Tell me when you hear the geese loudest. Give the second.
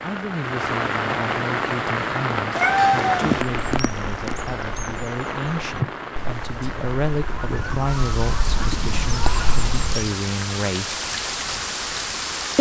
9 s.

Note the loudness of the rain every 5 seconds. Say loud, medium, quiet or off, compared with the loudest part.
loud, medium, loud.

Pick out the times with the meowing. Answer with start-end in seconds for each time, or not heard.
2.5-3.5.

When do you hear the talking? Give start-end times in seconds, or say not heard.
0.0-11.0.